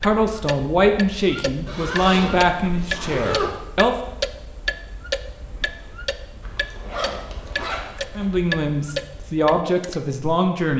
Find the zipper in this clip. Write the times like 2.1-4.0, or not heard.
1.6-3.5, 6.4-8.2.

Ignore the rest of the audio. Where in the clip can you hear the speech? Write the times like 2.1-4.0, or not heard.
0.0-4.0, 8.2-10.7.